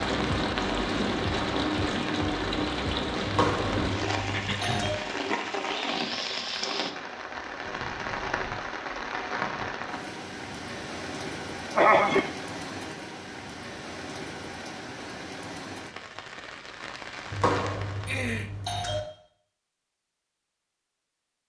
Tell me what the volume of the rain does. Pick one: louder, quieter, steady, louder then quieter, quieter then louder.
quieter.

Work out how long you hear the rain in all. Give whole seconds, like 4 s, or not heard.
18 s.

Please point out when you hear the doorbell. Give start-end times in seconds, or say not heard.
3.2-5.0, 17.3-19.0.